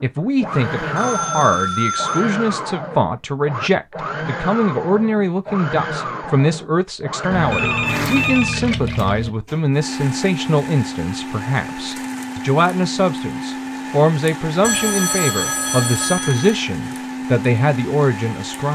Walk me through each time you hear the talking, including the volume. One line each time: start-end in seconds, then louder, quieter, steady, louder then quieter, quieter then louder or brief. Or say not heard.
0.0-18.6 steady.